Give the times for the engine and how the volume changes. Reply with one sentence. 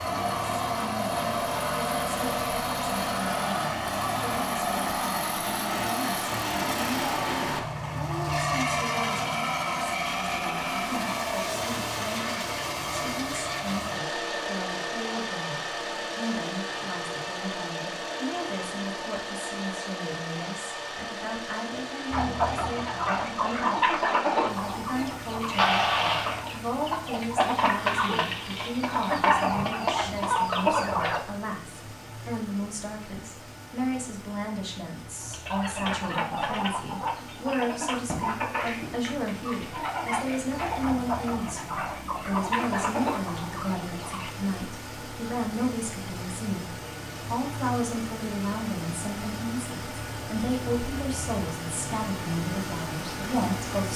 The engine can be heard from 0.0 to 53.9 s, getting quieter then louder.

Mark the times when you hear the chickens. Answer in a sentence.
You can hear the chickens from 22.1 to 31.2 s and from 35.2 to 44.3 s.